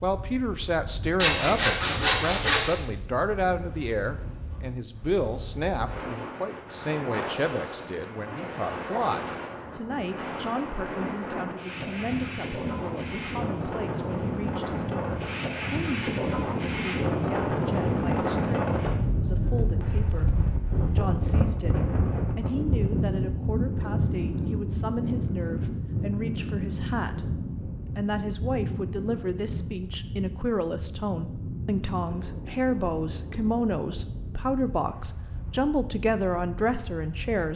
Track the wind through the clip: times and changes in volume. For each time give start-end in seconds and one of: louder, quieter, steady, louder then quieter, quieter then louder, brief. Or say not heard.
0.0-37.5 louder then quieter.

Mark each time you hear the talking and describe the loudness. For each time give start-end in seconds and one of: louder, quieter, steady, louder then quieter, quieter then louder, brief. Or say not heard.
0.0-37.5 quieter then louder.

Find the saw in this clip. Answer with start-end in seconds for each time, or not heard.
1.1-2.8.